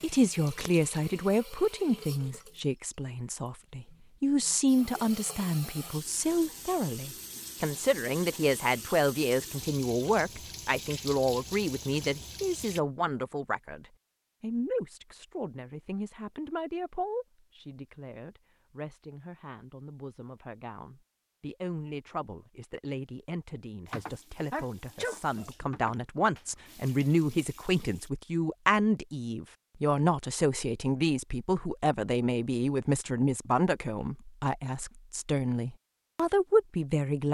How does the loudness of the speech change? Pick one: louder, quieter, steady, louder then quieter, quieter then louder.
quieter then louder.